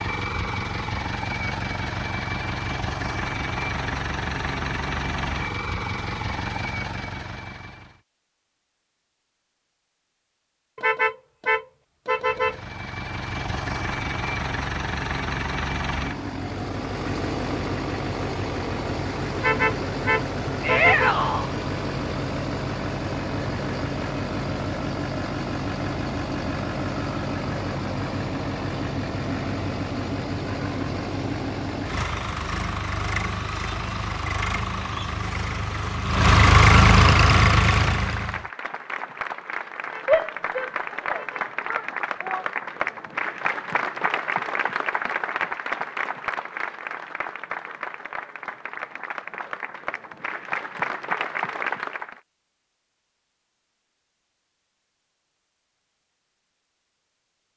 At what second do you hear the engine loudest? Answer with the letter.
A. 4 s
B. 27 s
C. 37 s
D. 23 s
C.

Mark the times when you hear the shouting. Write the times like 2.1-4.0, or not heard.
20.6-21.5, 40.0-42.5.